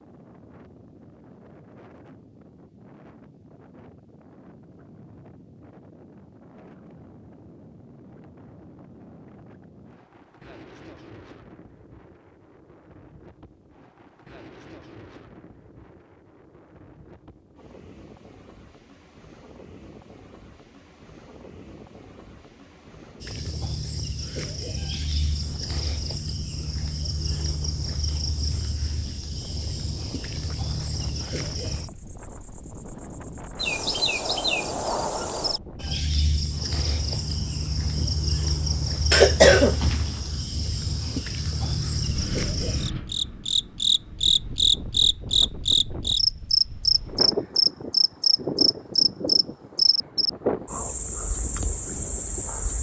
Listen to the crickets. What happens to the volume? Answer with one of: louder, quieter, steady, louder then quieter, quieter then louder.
louder.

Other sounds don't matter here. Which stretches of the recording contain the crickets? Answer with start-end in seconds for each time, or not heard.
23.2-52.7.